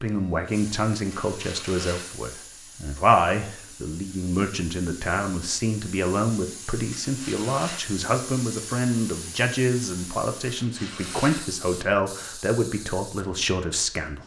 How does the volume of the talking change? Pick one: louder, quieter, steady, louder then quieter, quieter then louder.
steady.